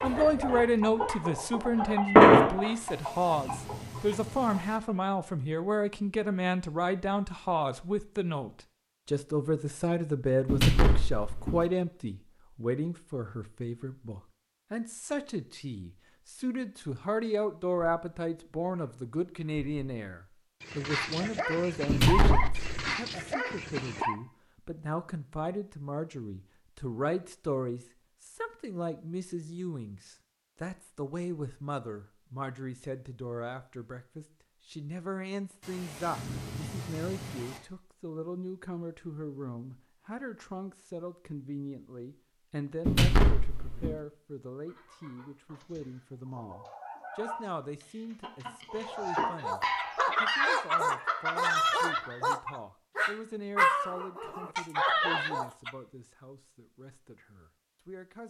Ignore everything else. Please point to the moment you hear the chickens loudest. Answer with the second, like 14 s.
2 s.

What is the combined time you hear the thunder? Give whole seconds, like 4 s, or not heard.
4 s.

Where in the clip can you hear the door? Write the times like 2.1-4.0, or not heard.
10.4-11.7, 21.9-22.9, 42.9-44.0.